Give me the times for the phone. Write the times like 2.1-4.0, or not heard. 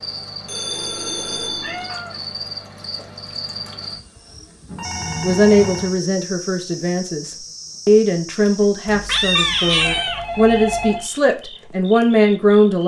0.5-1.9, 4.7-6.0, 8.8-11.1.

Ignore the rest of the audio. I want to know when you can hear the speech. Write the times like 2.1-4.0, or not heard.
5.2-12.8.